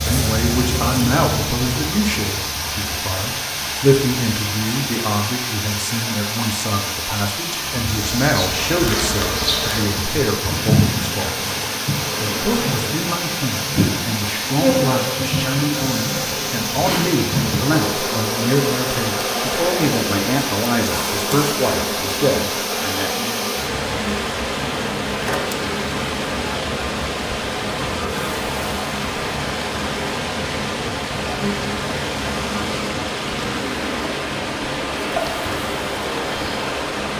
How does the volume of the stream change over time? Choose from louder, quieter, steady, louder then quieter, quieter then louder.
steady.